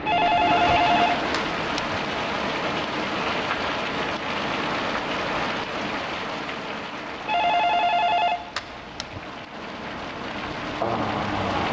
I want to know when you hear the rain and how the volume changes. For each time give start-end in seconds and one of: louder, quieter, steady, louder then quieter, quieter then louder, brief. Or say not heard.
0.0-11.6 quieter then louder.